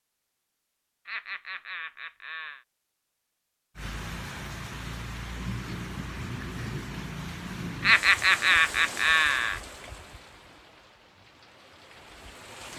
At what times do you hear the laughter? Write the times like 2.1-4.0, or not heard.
1.1-2.6, 7.8-9.6.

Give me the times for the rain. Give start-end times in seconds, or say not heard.
3.8-12.7.